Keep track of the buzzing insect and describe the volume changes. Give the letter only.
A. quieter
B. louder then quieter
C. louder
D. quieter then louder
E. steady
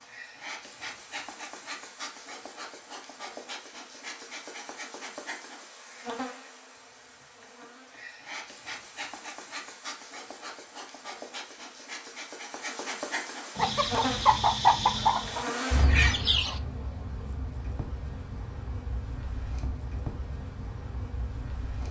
B.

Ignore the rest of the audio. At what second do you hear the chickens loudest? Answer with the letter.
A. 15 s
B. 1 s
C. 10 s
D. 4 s
A.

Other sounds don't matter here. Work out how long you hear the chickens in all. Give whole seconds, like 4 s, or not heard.
3 s.